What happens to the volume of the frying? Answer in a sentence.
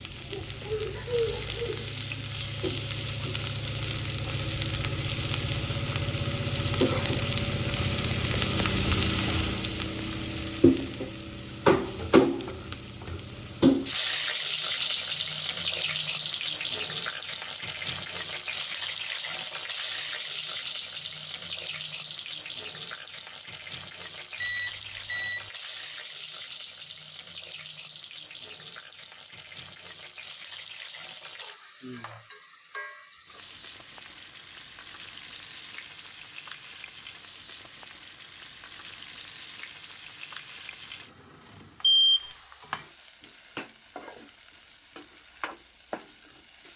The volume of the frying goes down.